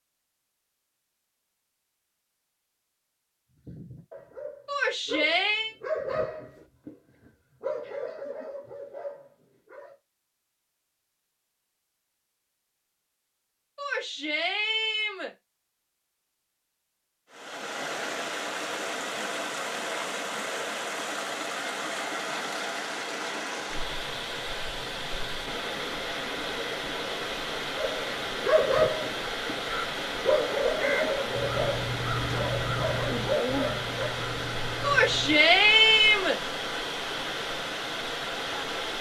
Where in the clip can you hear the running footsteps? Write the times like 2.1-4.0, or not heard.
not heard.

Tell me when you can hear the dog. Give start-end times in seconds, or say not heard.
3.5-9.9, 27.8-34.1.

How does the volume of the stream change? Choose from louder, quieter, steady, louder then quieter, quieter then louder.
steady.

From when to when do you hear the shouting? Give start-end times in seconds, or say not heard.
4.7-5.8, 13.8-15.3, 34.8-36.4.